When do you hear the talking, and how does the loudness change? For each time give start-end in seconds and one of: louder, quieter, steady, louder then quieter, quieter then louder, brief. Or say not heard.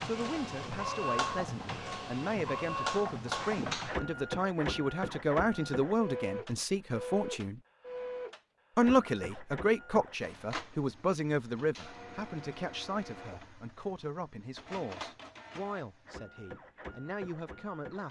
0.0-7.6 louder
8.8-18.0 quieter.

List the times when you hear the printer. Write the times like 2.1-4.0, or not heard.
0.0-18.0.